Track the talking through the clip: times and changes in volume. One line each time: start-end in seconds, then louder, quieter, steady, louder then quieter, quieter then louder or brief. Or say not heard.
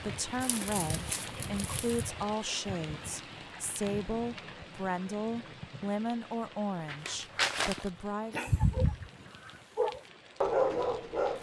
0.0-8.5 steady.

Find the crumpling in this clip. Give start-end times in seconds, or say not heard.
0.4-2.0, 6.8-7.9.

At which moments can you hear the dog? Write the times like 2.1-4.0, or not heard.
8.3-11.3.